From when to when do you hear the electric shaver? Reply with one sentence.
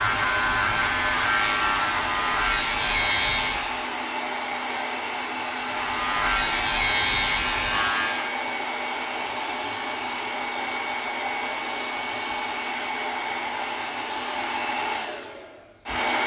You can hear the electric shaver from 0.0 to 3.9 s and from 5.5 to 8.3 s.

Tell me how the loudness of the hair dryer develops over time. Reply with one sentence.
The loudness of the hair dryer stays about the same.